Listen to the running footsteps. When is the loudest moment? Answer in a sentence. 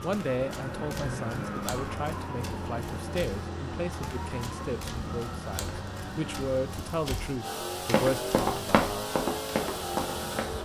The loudest moment of the running footsteps is at 9 seconds.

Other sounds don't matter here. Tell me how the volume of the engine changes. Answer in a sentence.
The loudness of the engine goes up.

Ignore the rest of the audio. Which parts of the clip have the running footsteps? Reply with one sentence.
You can hear the running footsteps from 0.0 to 10.6 s.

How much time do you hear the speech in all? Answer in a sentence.
You can hear the speech for 9 seconds altogether.